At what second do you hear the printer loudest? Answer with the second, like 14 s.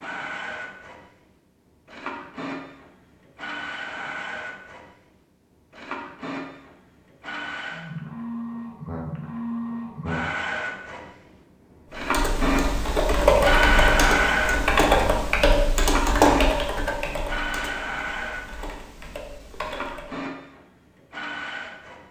14 s.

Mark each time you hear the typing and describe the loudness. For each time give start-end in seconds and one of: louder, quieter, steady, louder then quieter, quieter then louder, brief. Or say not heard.
11.9-20.1 quieter.